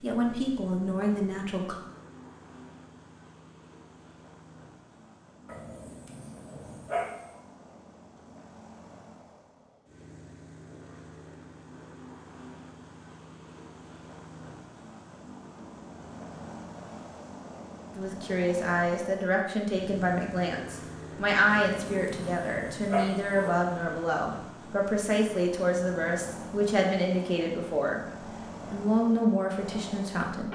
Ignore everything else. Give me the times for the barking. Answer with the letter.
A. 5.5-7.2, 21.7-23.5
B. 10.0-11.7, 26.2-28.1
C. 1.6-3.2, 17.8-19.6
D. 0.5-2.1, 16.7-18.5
A.